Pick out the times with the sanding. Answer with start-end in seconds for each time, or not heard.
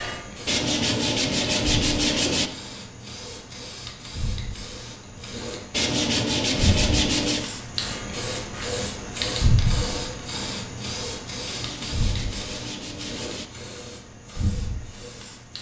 0.5-2.5, 5.7-7.5, 11.4-13.5.